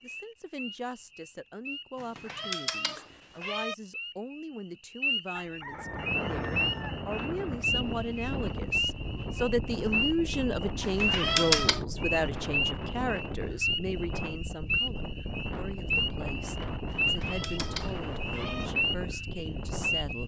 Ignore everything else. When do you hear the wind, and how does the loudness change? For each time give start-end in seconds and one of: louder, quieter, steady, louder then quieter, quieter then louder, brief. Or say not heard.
5.6-20.2 steady.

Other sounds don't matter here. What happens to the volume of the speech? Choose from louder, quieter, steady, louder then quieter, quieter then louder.
louder then quieter.